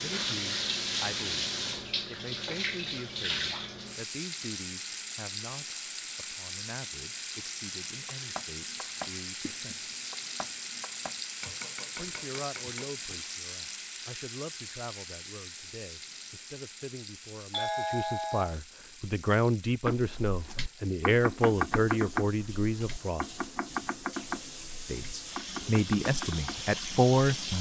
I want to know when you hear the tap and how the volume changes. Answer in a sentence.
You can hear the tap from 0.0 to 27.5 s, getting quieter then louder.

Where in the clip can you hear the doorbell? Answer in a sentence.
You can hear the doorbell from 17.5 to 18.6 s.